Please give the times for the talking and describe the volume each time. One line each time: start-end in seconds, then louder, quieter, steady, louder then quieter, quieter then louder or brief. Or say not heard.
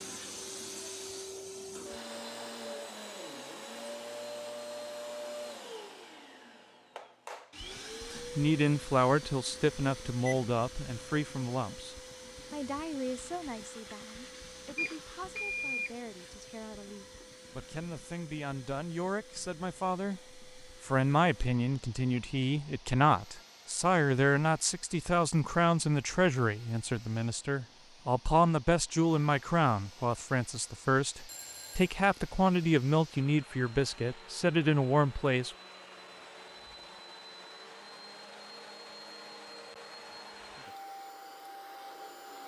8.2-35.5 quieter then louder.